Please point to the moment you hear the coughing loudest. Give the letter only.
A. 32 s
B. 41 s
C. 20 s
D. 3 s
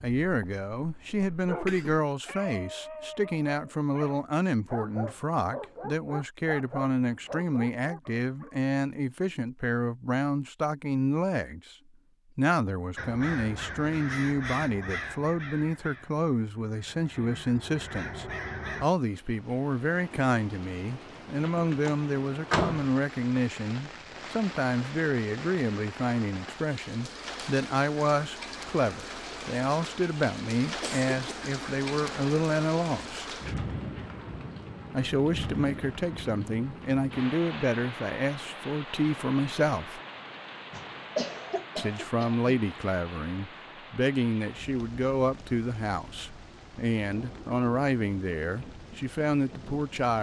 B.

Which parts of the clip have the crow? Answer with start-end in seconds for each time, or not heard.
12.9-18.9.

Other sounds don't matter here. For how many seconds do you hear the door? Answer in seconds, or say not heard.
2 s.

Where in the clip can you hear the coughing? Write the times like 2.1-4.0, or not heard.
1.6-2.4, 30.8-31.5, 40.7-42.4.